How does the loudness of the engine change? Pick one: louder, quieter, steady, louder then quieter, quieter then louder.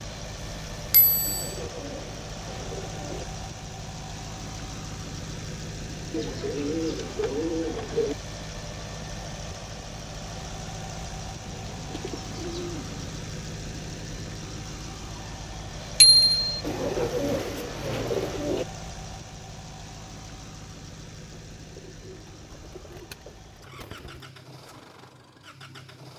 quieter.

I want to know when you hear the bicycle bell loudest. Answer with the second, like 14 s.
16 s.